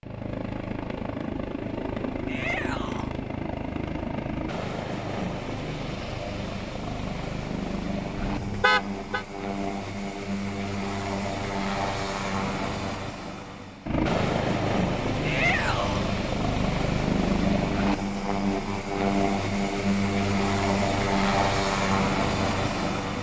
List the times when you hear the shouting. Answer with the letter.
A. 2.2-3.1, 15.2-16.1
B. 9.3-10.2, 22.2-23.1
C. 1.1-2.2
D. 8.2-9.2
A.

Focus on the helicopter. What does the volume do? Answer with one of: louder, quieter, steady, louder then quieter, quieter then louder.
louder.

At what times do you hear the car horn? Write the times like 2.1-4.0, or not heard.
8.2-9.2.